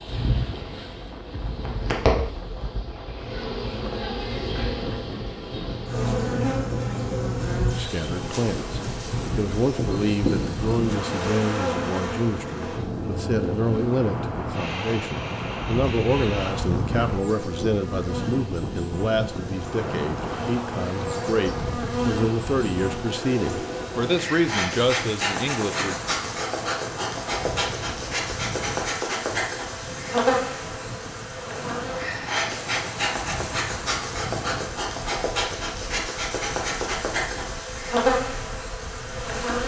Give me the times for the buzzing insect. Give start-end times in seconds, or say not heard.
0.0-39.6.